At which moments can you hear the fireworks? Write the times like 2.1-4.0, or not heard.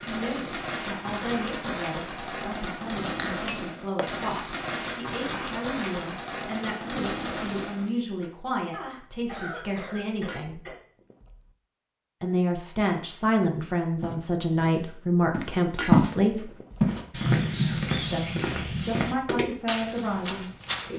0.0-8.3.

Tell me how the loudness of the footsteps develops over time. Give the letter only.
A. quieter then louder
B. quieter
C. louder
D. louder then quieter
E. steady
D.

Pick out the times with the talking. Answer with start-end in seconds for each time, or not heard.
0.0-10.6, 12.2-16.6, 18.1-20.9.